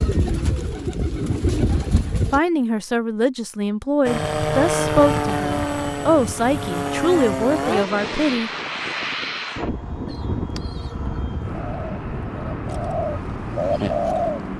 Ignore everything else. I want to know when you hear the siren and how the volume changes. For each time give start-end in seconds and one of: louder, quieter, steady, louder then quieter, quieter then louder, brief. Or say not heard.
not heard.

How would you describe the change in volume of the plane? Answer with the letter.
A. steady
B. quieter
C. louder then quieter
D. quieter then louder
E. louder
B.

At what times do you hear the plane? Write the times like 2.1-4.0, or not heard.
4.0-14.5.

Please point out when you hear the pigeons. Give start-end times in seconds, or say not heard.
0.0-2.4, 10.1-14.5.